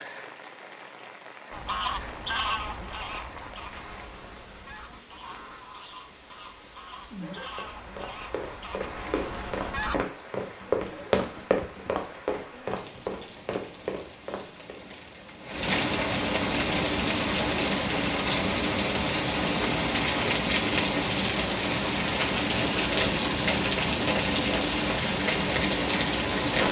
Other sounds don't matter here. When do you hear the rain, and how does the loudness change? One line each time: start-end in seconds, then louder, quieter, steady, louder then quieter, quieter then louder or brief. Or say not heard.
0.0-26.6 louder.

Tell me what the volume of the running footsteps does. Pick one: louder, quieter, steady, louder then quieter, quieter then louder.
louder then quieter.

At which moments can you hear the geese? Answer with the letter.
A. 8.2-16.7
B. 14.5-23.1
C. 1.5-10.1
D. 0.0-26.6
C.